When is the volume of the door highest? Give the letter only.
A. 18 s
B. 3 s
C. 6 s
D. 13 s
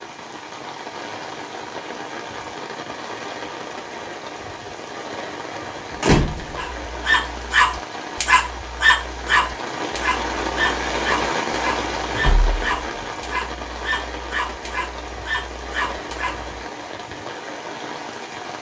C.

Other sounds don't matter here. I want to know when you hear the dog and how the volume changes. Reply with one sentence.
The dog can be heard from 6.5 to 16.5 s, getting quieter.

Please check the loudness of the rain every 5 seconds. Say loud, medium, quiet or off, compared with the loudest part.
medium, medium, loud, medium.